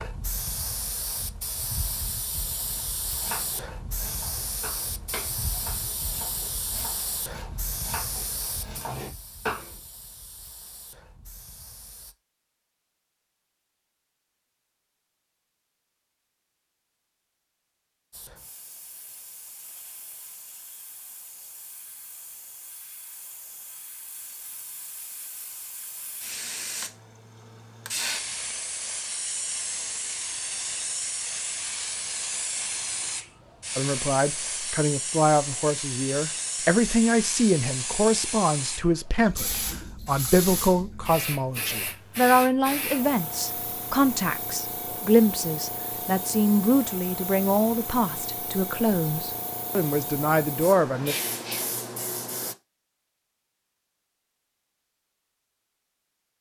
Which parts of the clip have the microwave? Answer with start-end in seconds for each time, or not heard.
not heard.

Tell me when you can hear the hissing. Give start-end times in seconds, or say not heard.
0.0-12.2, 18.1-52.5.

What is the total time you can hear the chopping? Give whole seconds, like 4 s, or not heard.
7 s.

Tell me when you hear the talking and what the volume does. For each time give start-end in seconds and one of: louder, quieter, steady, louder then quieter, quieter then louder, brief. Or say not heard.
33.8-51.1 steady.